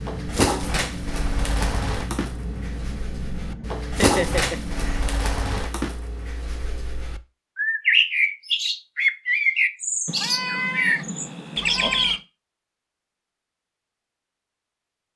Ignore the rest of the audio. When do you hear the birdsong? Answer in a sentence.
The birdsong can be heard from 0.0 to 12.2 s.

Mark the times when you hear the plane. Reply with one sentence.
The plane can be heard from 0.0 to 5.2 s.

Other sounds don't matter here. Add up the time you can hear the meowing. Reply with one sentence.
You can hear the meowing for 2 seconds altogether.